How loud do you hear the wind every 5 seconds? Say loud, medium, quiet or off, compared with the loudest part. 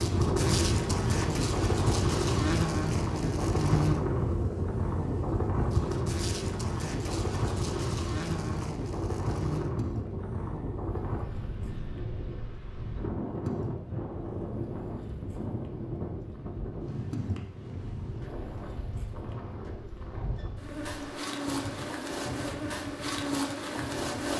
loud, loud, medium, medium, quiet.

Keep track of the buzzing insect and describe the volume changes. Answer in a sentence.
The loudness of the buzzing insect goes down, then up.